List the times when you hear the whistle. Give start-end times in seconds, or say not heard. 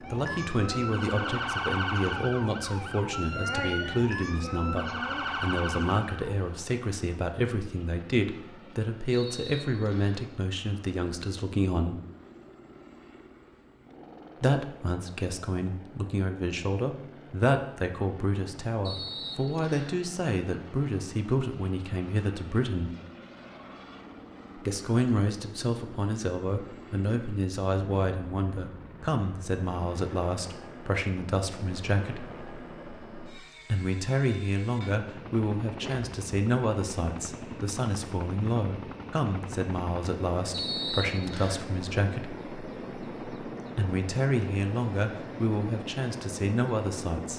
9.1-10.2, 18.9-19.9, 40.5-41.6.